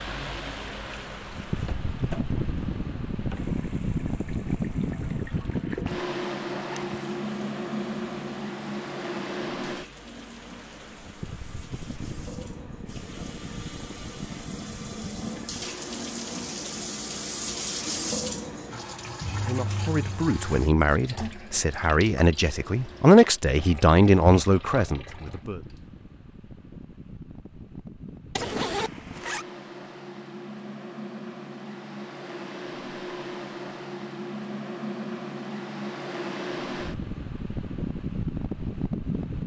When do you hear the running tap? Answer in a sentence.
The running tap can be heard from 0.0 to 25.9 s.